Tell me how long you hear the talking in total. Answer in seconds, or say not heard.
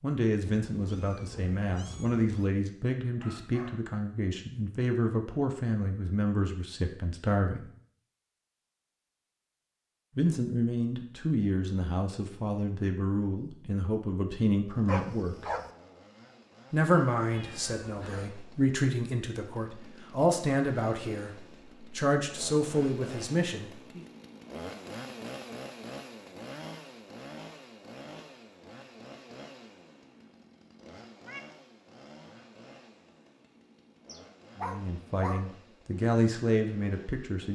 23 s.